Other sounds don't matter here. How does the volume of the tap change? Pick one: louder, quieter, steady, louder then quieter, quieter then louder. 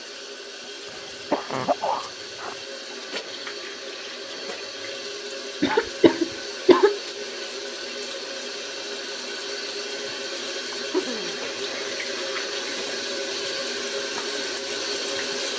louder.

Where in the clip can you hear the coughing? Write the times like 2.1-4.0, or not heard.
0.8-2.5, 5.6-7.0, 10.7-12.3.